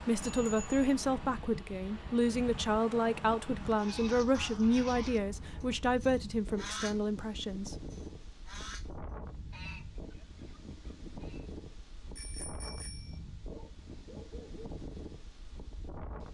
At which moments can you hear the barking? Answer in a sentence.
You can hear the barking from 13.4 to 14.7 s.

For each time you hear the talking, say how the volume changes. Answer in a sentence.
You can hear the talking from 0.1 to 7.8 s, at a steady volume.